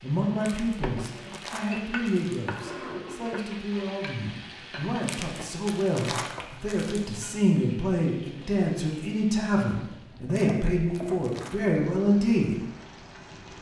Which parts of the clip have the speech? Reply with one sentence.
You can hear the speech from 0.0 to 12.6 s.